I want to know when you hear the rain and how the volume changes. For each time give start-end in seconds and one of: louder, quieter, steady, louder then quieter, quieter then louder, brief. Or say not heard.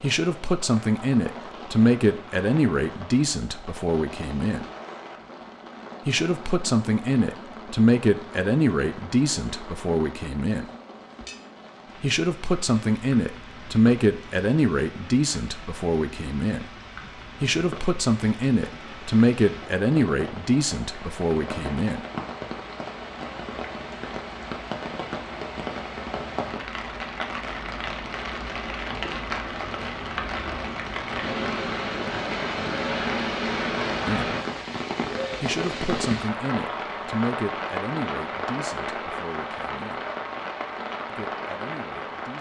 0.0-42.3 louder.